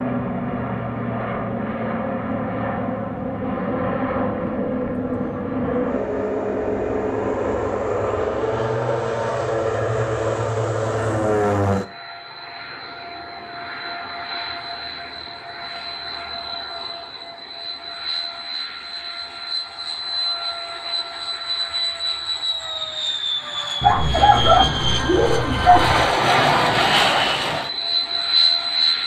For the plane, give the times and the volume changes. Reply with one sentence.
The plane can be heard from 0.0 to 29.0 s, getting quieter then louder.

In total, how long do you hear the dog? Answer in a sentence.
The dog can be heard for 2 seconds in total.